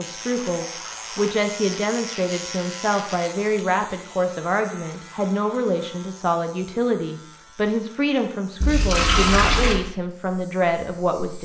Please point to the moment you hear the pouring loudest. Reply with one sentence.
The loudest moment of the pouring is at 9 seconds.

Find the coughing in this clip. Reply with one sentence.
The coughing can't be heard in this clip.